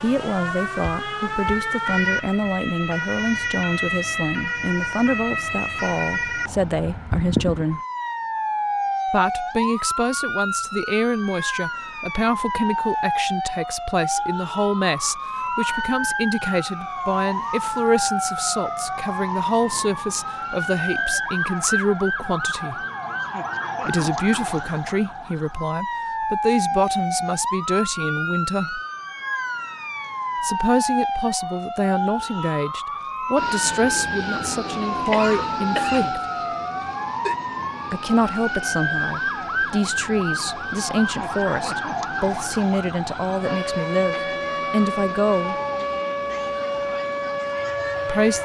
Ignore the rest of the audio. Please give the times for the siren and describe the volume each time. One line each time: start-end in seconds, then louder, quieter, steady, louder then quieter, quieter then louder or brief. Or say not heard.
0.0-48.4 steady.